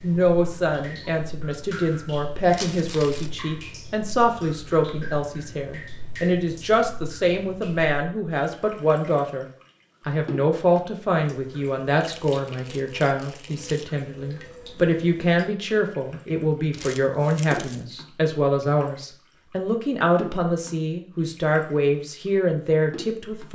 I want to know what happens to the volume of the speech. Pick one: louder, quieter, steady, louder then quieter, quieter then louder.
steady.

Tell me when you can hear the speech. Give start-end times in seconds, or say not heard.
0.0-9.4, 10.1-23.5.